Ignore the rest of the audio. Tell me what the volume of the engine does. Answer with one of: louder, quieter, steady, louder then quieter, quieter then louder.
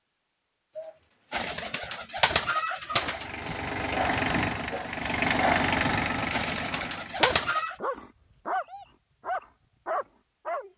louder then quieter.